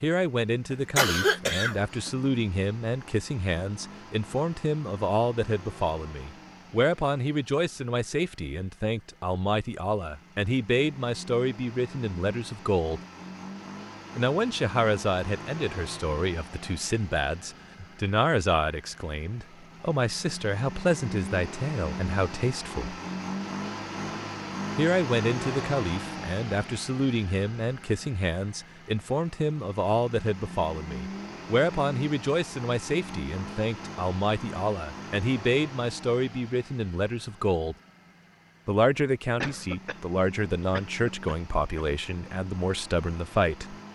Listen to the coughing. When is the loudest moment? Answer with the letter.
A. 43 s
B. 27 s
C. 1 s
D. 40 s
C.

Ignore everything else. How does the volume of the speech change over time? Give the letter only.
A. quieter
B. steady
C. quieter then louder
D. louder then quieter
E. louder
B.